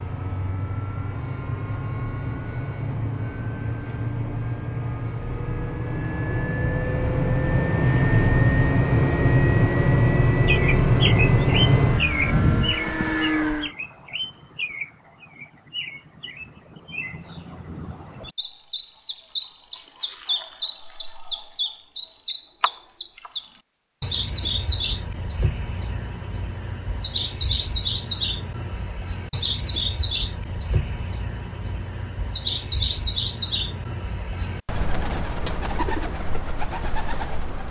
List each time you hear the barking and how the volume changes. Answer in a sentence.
You can't hear the barking here.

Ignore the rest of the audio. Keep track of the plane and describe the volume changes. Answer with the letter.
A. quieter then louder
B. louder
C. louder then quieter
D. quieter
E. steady
B.